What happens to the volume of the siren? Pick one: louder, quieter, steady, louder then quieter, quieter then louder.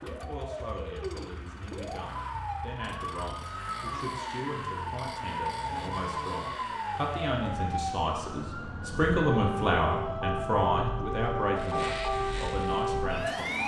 louder.